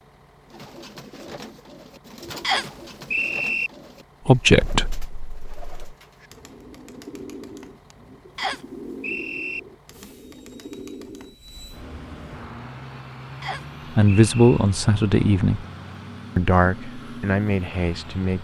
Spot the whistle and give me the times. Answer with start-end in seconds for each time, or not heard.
2.4-3.7, 8.3-9.6, 13.4-14.7.